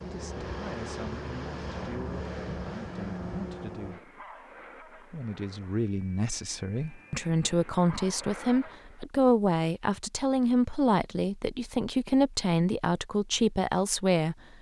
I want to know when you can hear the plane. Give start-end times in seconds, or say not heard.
0.0-9.1.